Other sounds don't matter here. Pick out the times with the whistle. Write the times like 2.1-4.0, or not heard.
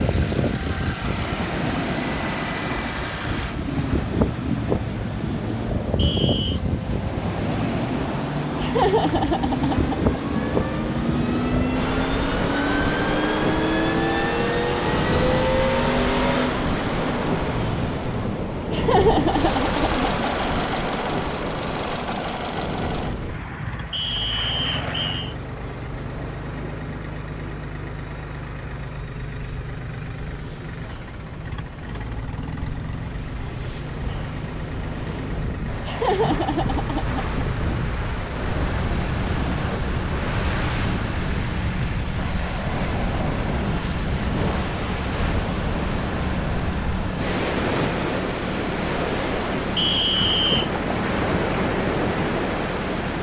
6.0-6.6, 23.9-25.4, 49.8-50.7.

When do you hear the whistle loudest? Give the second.
50 s.